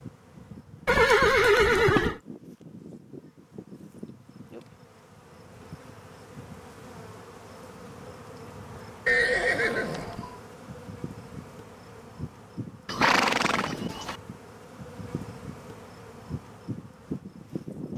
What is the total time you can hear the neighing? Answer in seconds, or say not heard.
4 s.